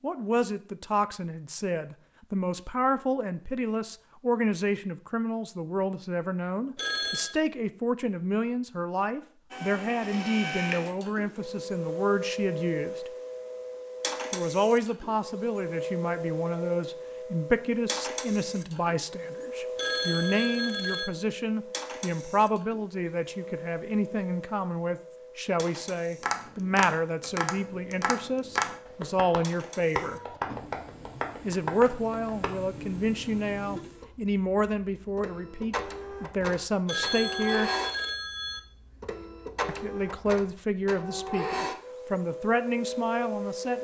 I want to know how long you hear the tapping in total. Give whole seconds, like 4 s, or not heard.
6 s.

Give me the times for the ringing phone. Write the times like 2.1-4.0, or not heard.
6.8-7.3, 19.8-21.1, 36.9-38.6.